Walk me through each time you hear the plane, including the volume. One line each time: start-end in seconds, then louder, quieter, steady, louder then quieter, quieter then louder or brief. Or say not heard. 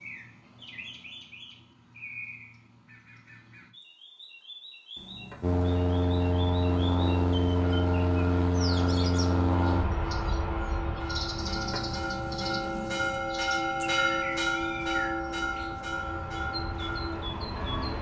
5.4-17.9 quieter then louder.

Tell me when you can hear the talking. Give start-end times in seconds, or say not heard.
not heard.